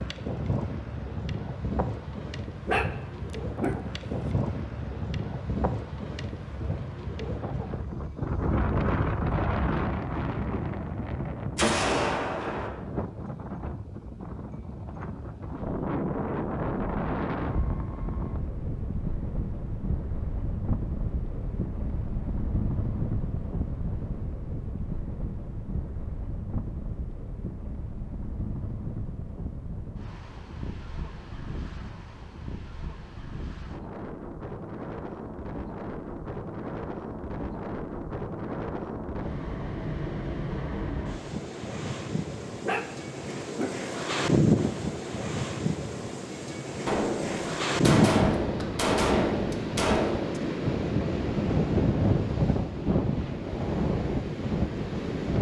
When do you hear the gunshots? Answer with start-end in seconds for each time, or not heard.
11.6-12.7, 46.9-50.4.